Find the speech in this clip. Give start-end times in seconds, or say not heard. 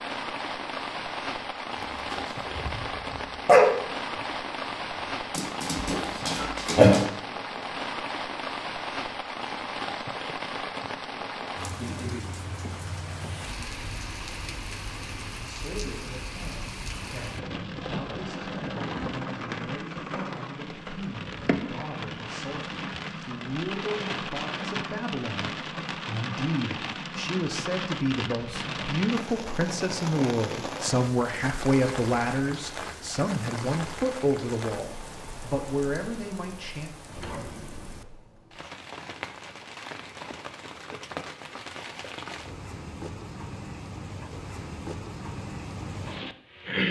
15.2-36.9.